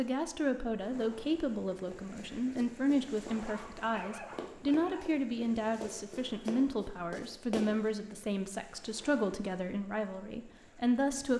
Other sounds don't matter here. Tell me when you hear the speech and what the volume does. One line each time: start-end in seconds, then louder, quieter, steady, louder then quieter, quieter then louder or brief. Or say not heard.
0.0-11.3 steady.